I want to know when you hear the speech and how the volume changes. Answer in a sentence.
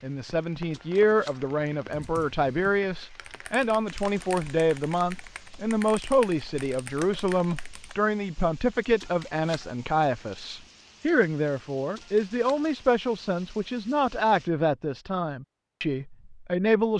You can hear the speech from 0.0 to 16.9 s, at a steady volume.